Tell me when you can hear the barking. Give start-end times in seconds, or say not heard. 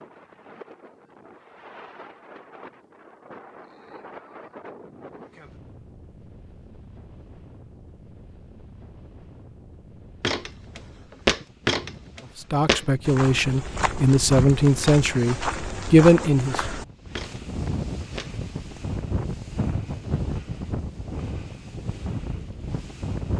not heard.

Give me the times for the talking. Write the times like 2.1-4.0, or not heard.
12.5-16.6.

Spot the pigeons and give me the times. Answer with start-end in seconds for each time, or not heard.
not heard.